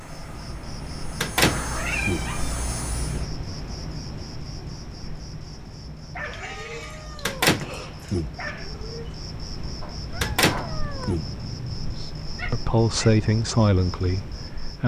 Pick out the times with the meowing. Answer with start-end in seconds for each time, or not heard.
1.4-3.4, 6.1-8.2, 10.1-12.0.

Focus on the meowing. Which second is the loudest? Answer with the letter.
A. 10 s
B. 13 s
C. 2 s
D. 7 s
C.